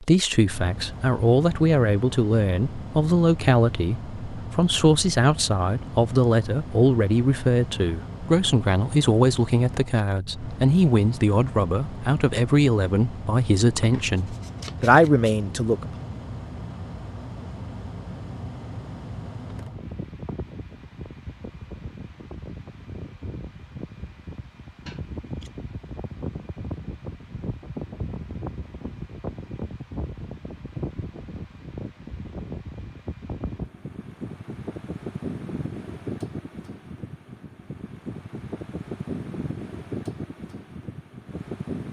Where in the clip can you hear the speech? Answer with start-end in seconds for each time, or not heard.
0.0-15.9.